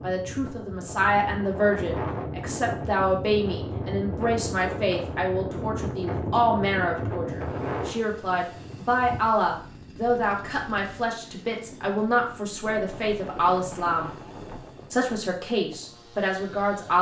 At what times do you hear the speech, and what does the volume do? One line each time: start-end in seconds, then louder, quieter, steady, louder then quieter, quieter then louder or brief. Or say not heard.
0.0-14.1 steady
14.9-16.9 brief.